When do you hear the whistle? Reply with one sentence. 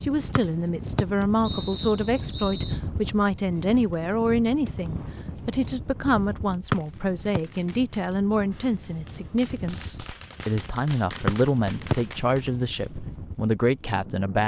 The whistle can be heard from 0.3 to 2.8 s, from 6.7 to 7.4 s and from 11.2 to 11.9 s.